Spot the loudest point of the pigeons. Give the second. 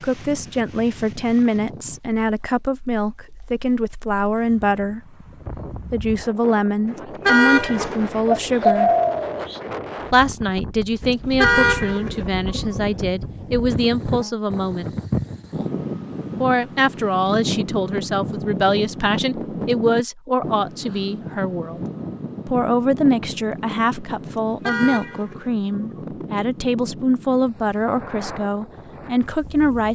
9 s.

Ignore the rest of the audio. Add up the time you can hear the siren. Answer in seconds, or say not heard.
not heard.